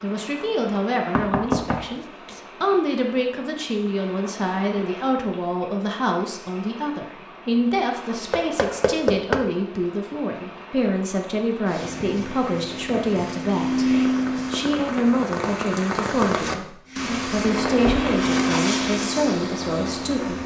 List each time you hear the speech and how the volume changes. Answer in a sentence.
The speech can be heard from 0.0 to 20.4 s, at a steady volume.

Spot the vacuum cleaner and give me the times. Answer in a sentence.
The vacuum cleaner can be heard from 11.7 to 14.7 s and from 16.9 to 20.4 s.